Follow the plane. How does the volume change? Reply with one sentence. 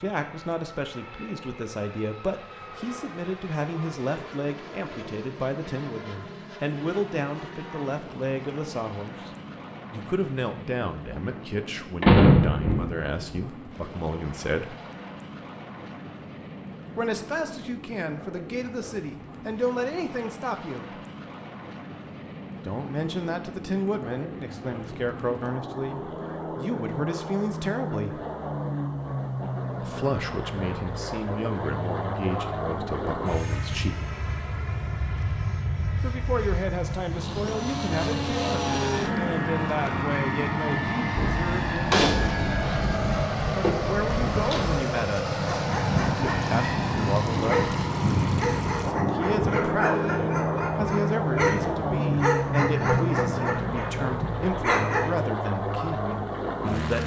The loudness of the plane goes up.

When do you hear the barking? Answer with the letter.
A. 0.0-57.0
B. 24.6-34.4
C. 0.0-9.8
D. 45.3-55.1
D.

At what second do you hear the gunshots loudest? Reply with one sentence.
The loudest moment of the gunshots is at 12 seconds.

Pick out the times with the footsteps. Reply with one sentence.
The footsteps can't be heard in this clip.